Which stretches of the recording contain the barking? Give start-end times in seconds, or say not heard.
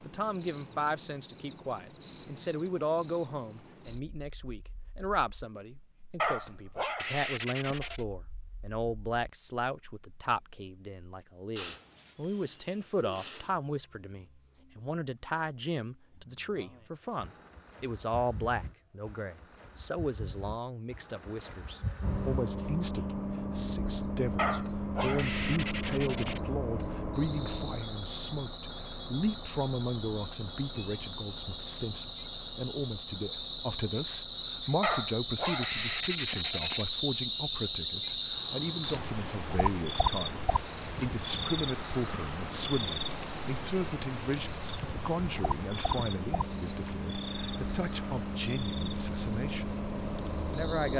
6.2-8.1, 24.4-26.4, 34.8-36.9.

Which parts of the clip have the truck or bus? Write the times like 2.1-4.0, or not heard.
22.0-50.9.